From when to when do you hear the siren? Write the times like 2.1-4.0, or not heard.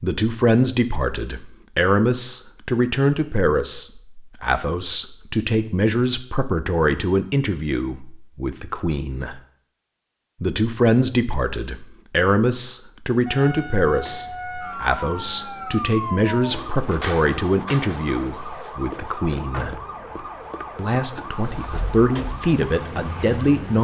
13.2-23.7.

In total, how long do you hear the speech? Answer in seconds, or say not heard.
22 s.